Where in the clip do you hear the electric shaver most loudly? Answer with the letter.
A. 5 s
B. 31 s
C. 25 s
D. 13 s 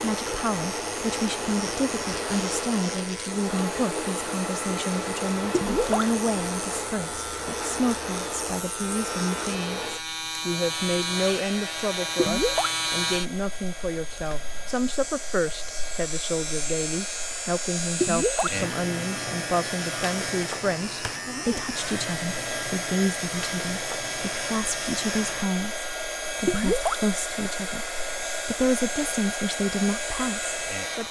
D.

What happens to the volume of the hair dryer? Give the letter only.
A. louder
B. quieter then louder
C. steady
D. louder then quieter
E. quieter
B.